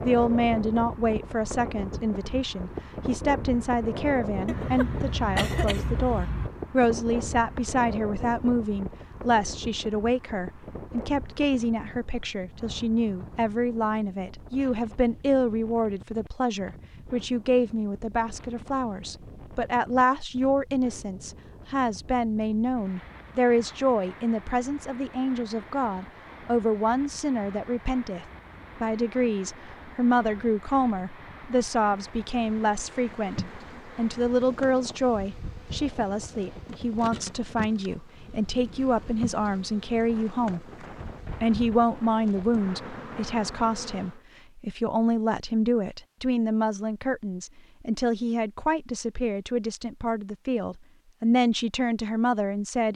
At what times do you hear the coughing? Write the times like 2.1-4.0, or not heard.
4.5-6.5.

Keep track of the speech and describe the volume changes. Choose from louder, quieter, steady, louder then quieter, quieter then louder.
steady.